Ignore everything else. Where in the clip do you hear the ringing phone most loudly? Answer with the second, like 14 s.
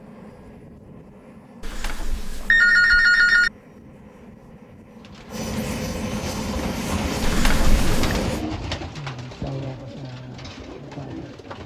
3 s.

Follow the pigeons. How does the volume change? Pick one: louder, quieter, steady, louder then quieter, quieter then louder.
louder then quieter.